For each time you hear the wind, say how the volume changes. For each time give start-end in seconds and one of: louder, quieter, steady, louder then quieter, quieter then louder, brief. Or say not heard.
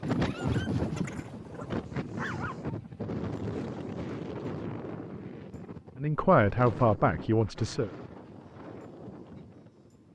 0.0-10.1 quieter.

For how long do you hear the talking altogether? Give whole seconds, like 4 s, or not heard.
2 s.